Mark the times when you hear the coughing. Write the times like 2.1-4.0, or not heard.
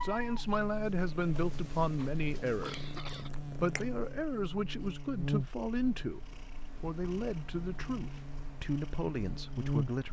2.5-3.3.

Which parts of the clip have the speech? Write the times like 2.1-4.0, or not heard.
0.0-10.0.